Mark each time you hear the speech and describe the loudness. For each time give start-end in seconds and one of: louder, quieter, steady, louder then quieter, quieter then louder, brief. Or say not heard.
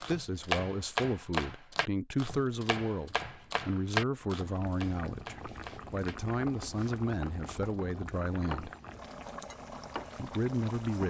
0.0-8.7 steady
10.2-11.0 brief.